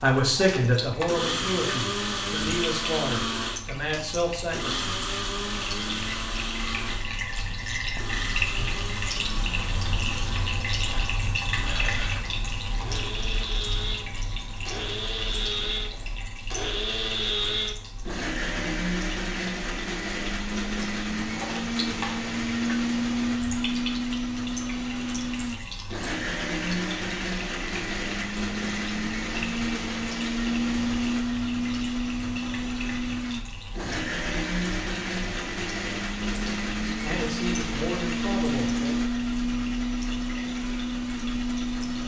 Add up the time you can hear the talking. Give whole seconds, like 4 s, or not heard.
7 s.